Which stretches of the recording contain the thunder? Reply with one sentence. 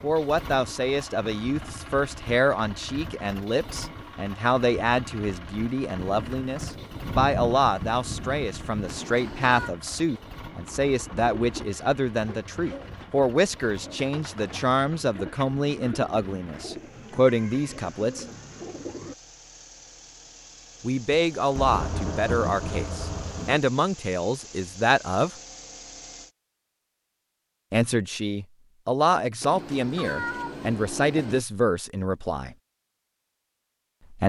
The thunder can be heard from 6.0 to 9.0 s and from 21.1 to 23.6 s.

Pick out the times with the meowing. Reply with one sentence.
You can hear the meowing from 8.8 to 9.7 s and from 29.4 to 31.4 s.